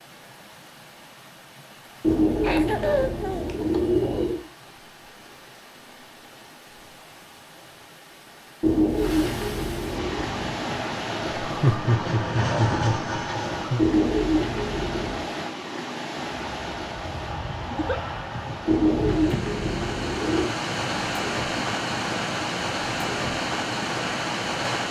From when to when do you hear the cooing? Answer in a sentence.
You can hear the cooing from 2.0 to 4.5 s, from 8.6 to 10.2 s, from 13.8 to 15.2 s and from 18.6 to 20.5 s.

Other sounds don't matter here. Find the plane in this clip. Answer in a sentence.
You can hear the plane from 10.1 to 13.8 s and from 16.1 to 24.8 s.